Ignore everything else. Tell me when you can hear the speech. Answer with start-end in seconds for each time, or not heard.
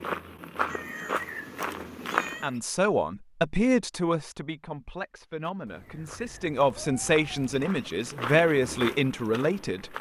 2.4-9.9.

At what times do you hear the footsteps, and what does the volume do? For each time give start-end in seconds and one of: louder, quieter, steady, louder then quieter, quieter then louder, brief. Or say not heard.
0.0-2.6 brief
5.4-9.9 louder.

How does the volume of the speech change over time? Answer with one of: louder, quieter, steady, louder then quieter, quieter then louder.
quieter then louder.